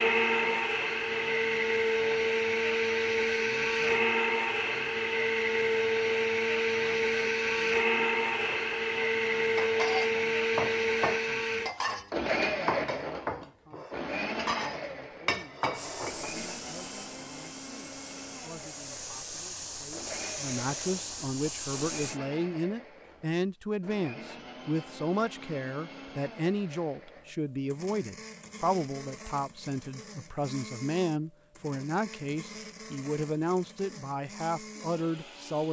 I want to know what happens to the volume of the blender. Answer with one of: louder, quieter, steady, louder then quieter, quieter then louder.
quieter.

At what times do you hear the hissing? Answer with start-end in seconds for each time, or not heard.
15.7-22.2.